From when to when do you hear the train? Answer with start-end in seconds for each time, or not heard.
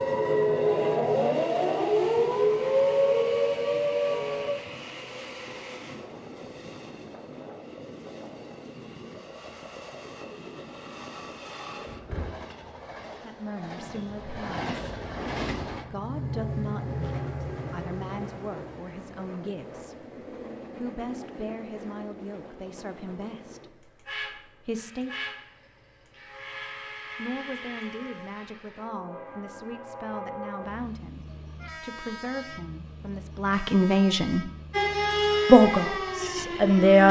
0.0-36.8.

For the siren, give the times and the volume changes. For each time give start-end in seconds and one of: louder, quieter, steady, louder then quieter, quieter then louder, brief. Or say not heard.
0.0-4.5 steady
34.7-37.0 brief.